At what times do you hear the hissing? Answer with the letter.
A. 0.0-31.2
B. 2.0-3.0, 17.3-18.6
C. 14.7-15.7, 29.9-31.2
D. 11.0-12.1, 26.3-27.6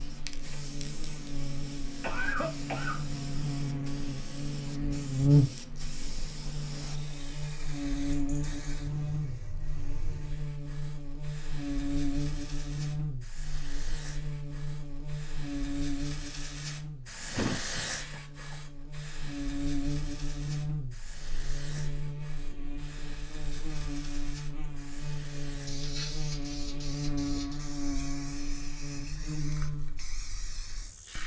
A.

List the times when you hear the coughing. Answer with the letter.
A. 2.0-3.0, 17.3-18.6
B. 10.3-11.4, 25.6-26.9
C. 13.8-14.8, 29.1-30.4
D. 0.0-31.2
A.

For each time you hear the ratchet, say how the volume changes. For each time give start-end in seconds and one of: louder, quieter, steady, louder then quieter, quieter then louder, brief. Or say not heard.
not heard.